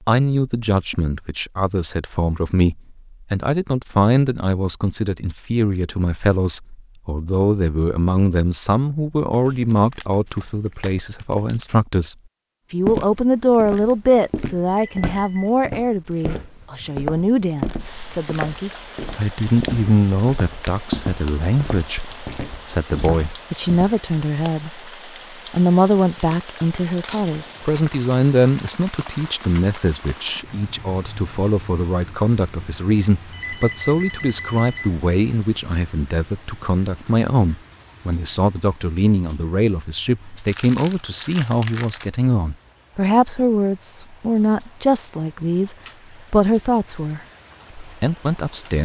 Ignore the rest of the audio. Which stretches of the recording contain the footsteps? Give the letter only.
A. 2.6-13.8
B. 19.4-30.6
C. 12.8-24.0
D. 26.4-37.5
C.